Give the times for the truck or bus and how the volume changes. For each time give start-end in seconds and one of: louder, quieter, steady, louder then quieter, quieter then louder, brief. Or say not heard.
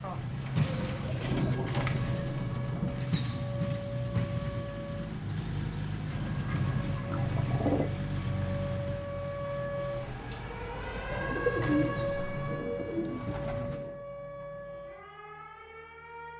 0.0-12.3 quieter.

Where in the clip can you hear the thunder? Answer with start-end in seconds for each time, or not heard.
0.0-3.0.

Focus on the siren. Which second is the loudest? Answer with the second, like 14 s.
12 s.